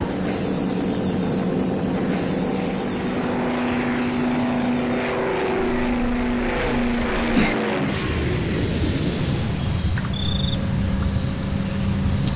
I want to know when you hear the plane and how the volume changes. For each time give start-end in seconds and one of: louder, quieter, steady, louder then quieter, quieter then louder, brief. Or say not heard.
0.0-12.3 steady.